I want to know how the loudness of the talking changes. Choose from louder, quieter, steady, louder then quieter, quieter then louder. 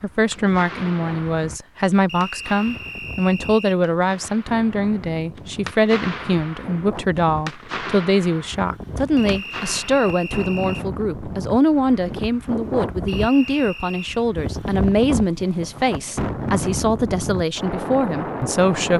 steady.